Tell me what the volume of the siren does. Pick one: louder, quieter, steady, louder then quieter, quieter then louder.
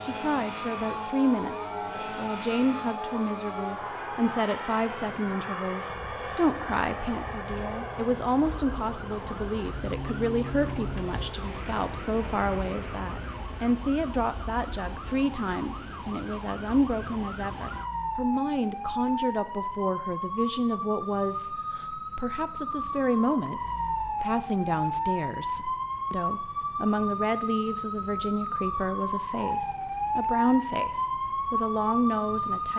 louder.